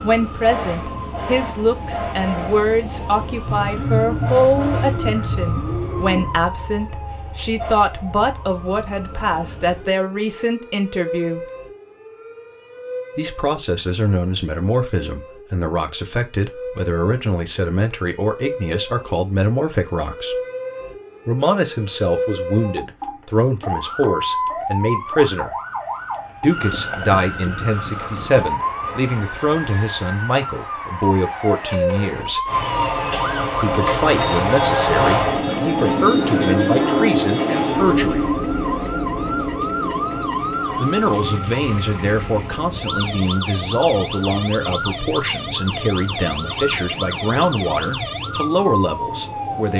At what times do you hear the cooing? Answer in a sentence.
The cooing can be heard from 3.5 to 6.4 s.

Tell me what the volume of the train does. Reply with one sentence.
The loudness of the train goes down.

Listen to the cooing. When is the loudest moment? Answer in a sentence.
The loudest moment of the cooing is at 4 seconds.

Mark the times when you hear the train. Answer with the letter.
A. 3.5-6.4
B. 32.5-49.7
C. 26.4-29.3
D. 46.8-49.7
B.